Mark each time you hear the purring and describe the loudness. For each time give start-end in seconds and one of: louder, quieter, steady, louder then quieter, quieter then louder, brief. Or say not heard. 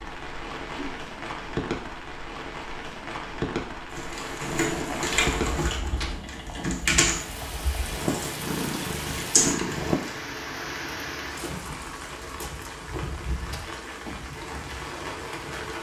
4.5-9.9 quieter then louder.